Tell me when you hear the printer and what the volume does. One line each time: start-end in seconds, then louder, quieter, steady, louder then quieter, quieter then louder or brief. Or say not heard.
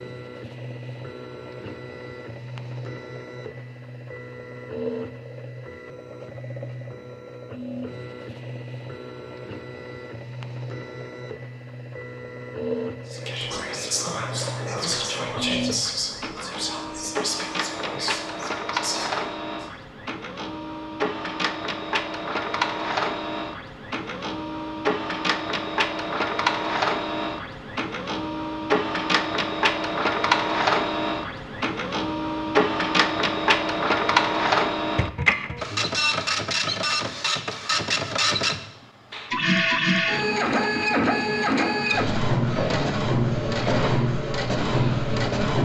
0.0-45.6 louder.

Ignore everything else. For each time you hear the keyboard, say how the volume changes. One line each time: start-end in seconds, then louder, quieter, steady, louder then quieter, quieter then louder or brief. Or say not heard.
not heard.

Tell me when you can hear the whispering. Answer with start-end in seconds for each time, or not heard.
13.1-19.6.